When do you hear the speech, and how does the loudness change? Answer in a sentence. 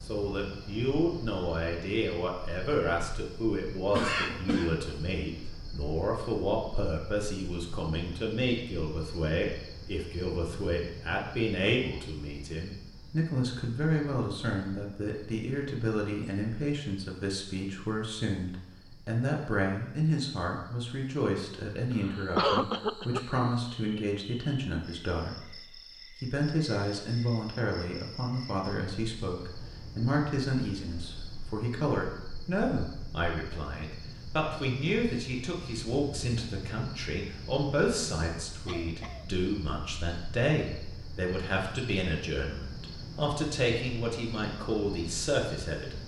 You can hear the speech from 0.0 to 46.0 s, at a steady volume.